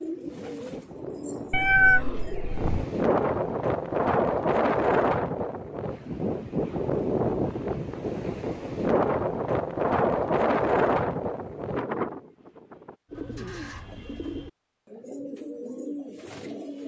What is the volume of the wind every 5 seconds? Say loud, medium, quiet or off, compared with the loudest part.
loud, loud, loud, off.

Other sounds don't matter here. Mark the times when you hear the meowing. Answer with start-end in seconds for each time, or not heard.
1.5-2.9.